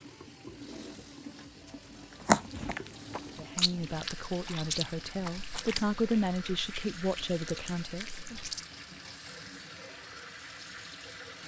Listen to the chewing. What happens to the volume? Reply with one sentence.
The loudness of the chewing goes down.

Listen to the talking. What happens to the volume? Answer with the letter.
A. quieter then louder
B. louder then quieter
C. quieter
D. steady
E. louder
B.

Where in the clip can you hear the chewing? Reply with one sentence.
The chewing can be heard from 2.1 to 8.7 s.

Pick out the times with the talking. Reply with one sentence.
The talking can be heard from 3.4 to 8.4 s.